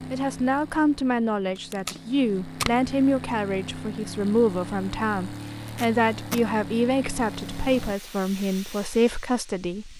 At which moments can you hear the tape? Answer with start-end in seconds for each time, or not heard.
1.6-2.9, 5.6-6.5.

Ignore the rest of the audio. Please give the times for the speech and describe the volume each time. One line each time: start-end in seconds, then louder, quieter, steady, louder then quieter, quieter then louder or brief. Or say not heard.
0.1-9.9 steady.